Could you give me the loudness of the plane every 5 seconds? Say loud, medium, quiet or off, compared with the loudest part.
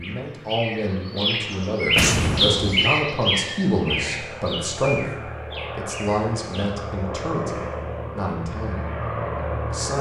medium, loud.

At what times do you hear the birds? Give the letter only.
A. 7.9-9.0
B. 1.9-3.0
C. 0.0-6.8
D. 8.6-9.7
C.